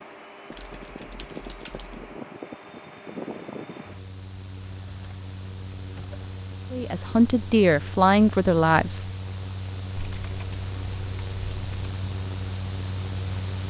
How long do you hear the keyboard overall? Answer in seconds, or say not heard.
5 s.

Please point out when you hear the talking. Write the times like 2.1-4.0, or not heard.
6.7-9.1.